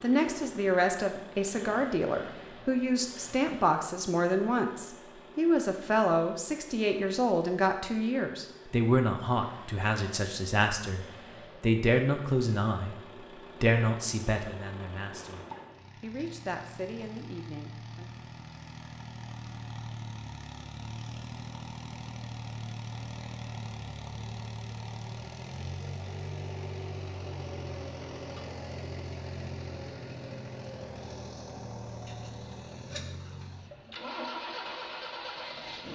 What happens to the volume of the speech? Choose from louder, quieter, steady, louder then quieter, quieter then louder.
quieter.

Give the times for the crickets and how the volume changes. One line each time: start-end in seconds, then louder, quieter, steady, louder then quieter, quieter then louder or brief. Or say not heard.
not heard.